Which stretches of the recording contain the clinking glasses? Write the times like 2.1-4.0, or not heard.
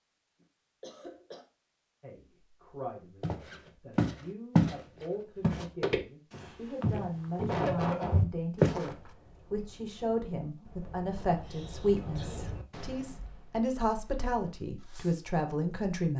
not heard.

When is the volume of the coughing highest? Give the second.
8 s.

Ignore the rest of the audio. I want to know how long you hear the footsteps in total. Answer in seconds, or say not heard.
5 s.